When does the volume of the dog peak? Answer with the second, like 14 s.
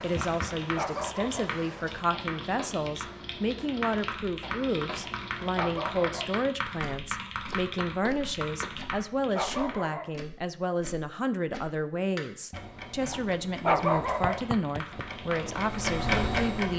14 s.